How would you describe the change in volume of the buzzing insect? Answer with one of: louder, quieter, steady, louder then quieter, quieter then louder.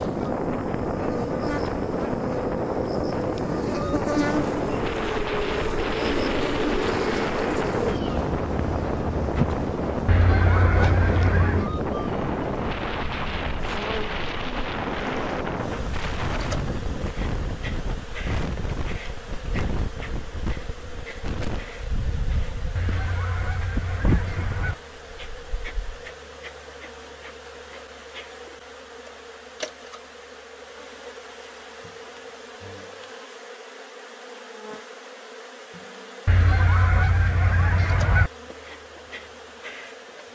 quieter.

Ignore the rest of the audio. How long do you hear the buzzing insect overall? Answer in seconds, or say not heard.
40 s.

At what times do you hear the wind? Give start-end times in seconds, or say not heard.
0.0-26.1.